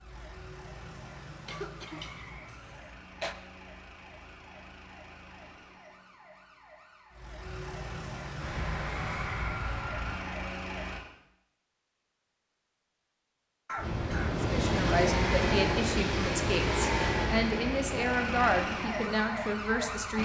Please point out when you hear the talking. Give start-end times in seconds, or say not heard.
14.4-20.2.